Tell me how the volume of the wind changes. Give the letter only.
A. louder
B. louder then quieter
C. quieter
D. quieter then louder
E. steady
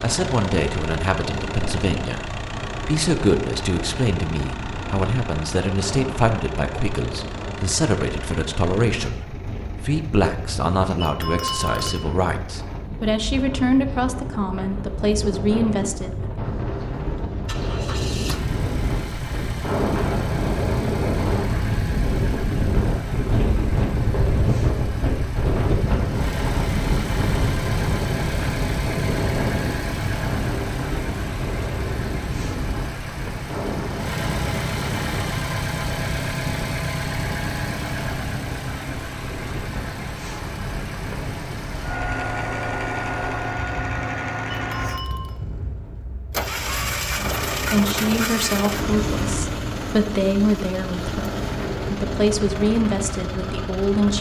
B.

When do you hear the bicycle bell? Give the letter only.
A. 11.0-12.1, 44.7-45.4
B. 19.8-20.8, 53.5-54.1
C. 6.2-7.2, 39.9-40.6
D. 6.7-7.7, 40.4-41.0
A.